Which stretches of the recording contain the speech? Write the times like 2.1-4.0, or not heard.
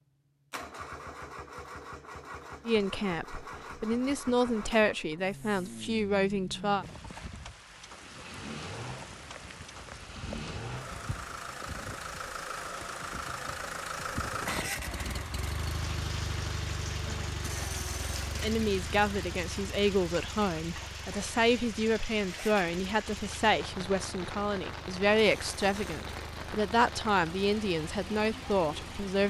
2.6-6.8, 18.4-29.2.